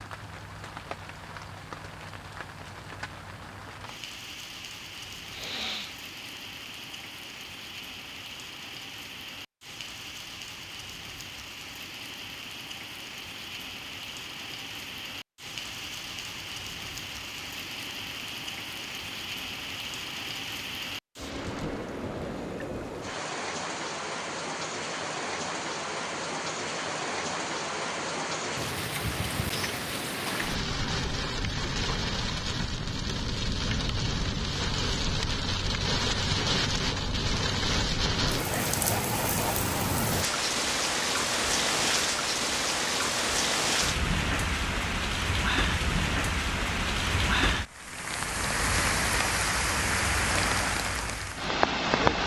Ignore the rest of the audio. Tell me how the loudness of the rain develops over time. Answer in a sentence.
The volume of the rain goes up.